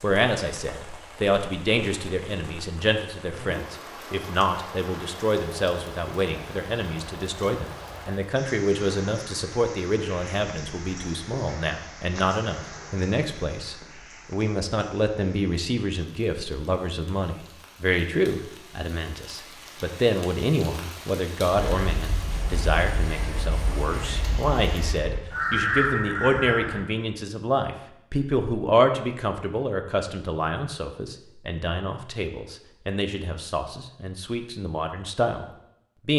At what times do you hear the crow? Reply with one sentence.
The crow can be heard from 21.5 to 26.9 s.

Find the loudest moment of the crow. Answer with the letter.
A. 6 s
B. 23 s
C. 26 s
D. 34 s
C.